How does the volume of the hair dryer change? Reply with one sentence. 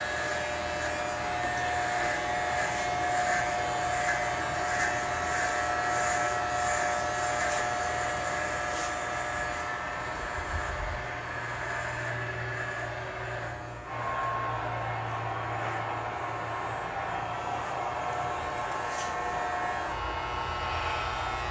The volume of the hair dryer stays about the same.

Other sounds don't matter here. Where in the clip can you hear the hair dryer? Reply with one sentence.
You can hear the hair dryer from 0.2 to 21.4 s.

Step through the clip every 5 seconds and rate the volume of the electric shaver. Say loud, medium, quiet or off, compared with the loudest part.
loud, loud, medium, medium, medium.